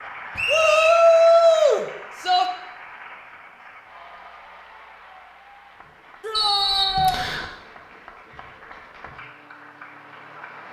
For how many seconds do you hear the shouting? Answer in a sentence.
The shouting can be heard for 3 seconds in total.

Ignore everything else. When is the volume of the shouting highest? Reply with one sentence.
The loudest moment of the shouting is at 1 second.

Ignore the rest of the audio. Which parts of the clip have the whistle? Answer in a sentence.
You can hear the whistle from 0.3 to 1.0 s and from 6.3 to 7.5 s.